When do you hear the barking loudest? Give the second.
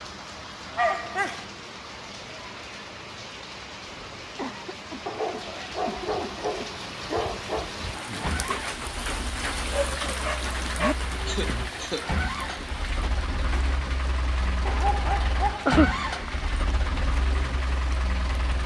16 s.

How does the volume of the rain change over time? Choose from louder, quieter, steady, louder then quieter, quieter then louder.
louder then quieter.